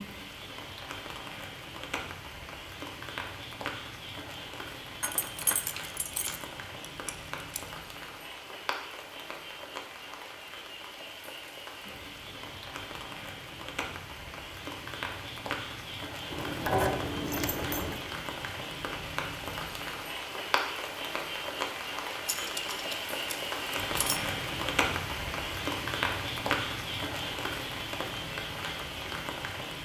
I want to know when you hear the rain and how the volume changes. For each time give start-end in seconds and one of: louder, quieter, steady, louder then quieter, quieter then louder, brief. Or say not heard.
0.0-29.8 louder.